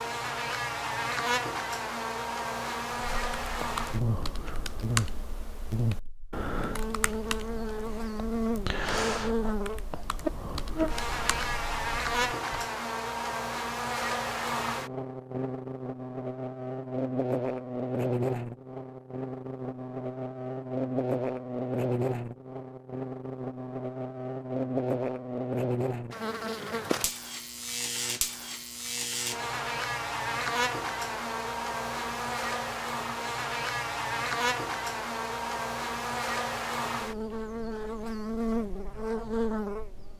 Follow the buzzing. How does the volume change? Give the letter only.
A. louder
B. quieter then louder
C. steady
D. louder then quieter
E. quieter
C.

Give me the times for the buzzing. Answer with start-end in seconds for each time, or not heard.
0.0-40.1.